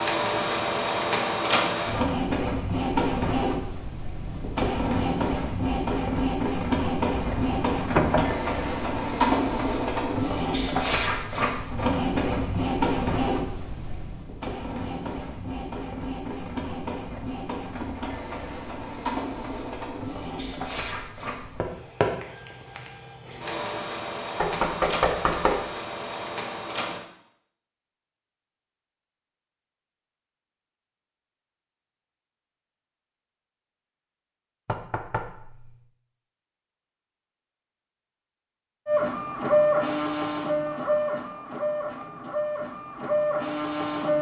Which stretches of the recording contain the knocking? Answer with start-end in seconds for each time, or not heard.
7.2-8.3, 24.4-25.6, 34.6-35.8.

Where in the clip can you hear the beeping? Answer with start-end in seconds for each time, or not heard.
not heard.